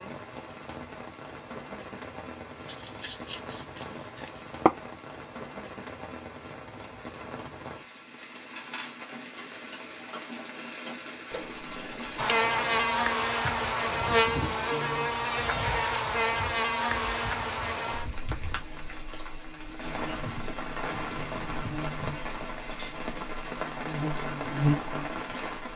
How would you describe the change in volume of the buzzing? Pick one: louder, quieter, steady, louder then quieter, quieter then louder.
quieter then louder.